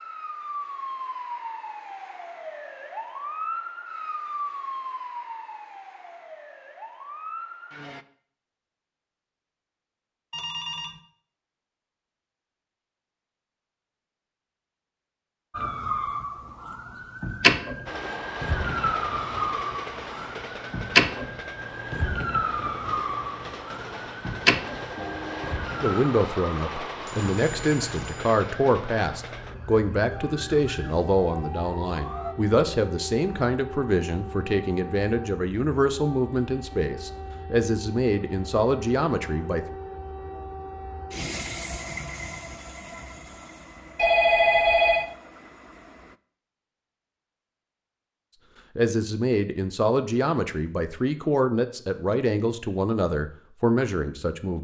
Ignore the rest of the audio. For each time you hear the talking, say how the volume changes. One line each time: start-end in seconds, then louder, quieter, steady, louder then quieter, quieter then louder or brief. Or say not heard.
25.8-39.6 steady
48.8-54.5 steady.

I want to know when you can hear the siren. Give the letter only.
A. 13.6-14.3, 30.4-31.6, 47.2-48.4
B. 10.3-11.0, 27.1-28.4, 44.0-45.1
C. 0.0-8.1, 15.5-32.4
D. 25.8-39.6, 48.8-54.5
C.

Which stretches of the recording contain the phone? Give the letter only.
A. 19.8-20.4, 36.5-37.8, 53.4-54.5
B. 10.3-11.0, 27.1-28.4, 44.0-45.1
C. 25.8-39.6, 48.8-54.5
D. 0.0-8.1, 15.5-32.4
B.